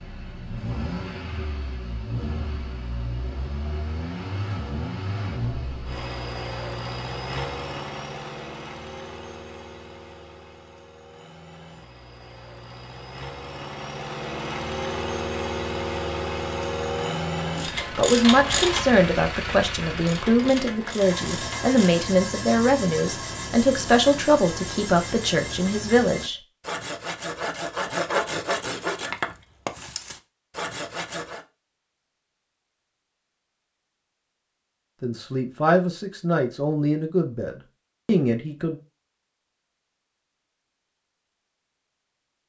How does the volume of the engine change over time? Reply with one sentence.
The volume of the engine goes down, then up.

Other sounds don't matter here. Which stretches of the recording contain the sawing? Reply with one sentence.
The sawing can be heard from 20.9 to 31.4 s.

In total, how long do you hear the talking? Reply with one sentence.
You can hear the talking for 12 seconds altogether.